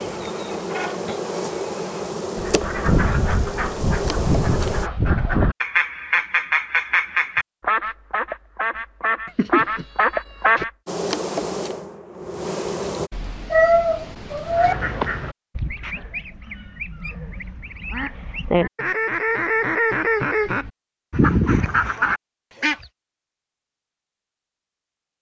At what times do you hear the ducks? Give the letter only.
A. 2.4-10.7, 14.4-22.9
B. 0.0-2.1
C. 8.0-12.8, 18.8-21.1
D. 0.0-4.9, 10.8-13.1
A.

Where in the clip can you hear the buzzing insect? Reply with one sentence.
The buzzing insect can be heard from 0.0 to 4.9 s and from 10.8 to 13.1 s.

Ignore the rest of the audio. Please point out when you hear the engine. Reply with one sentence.
The engine can be heard from 0.0 to 2.1 s.